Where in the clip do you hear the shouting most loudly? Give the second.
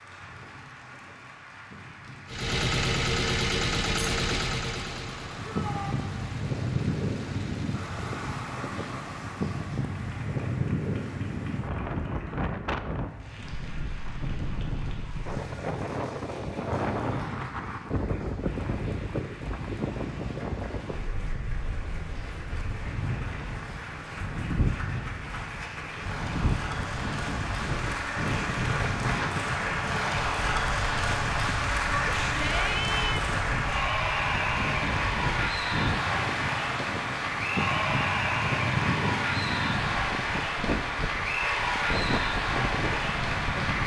33 s.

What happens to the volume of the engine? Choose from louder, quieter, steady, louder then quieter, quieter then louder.
quieter.